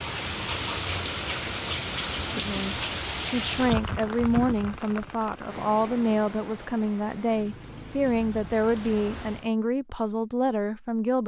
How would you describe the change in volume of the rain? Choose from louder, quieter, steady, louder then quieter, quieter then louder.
quieter.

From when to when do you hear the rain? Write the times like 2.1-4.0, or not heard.
0.0-9.5.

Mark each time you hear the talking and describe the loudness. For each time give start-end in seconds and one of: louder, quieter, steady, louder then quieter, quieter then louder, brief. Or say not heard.
2.3-11.2 steady.